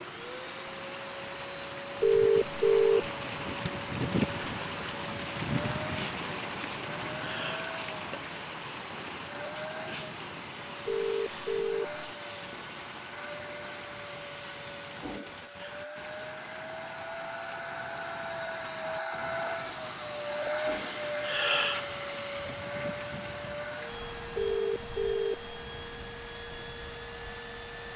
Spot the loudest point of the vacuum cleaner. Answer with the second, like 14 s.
21 s.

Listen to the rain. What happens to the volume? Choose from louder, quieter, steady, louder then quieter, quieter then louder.
quieter.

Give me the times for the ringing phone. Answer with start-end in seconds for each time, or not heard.
2.0-3.0, 10.8-11.8, 24.4-25.4.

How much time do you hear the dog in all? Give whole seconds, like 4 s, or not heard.
not heard.